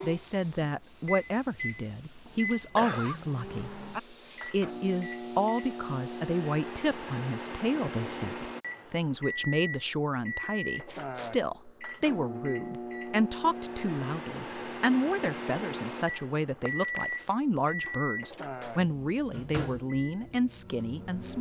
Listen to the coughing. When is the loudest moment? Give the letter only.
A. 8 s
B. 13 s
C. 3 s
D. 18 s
C.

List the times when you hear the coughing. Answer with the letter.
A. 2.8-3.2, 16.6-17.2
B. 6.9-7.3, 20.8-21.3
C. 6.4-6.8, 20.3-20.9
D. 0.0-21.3
A.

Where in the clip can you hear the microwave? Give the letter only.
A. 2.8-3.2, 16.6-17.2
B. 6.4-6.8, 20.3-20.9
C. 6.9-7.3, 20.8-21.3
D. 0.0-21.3
D.